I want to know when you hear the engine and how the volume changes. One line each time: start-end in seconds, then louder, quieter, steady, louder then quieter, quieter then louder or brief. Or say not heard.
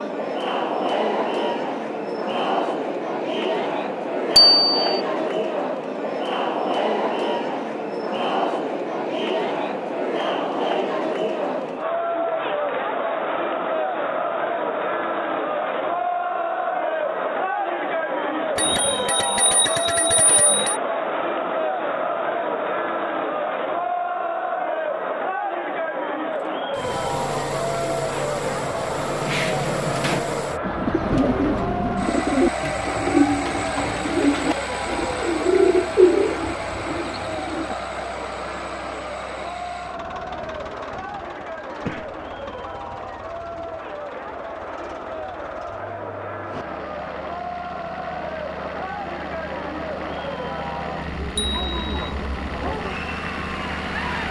26.5-54.2 quieter then louder.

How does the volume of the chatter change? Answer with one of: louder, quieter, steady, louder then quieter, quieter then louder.
quieter.